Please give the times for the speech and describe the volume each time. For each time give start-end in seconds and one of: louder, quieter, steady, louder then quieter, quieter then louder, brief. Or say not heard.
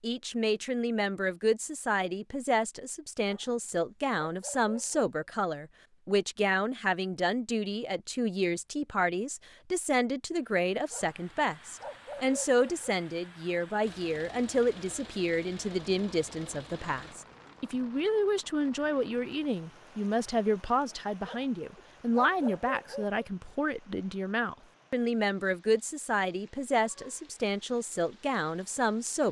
0.0-29.2 steady.